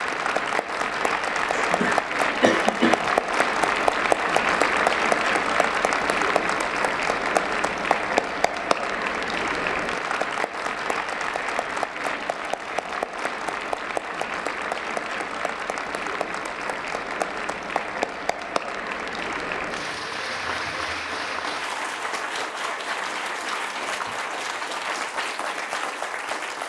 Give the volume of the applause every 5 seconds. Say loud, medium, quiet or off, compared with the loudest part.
loud, loud, medium, medium, medium, medium.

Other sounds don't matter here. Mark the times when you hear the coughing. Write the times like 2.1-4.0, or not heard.
1.5-3.0.